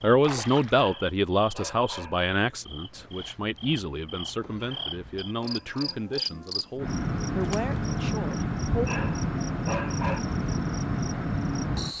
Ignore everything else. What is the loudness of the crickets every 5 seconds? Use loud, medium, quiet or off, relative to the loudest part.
quiet, loud, loud.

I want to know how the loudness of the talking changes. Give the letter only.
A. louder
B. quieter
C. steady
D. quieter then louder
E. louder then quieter
B.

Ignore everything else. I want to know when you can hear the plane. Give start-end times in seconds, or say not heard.
not heard.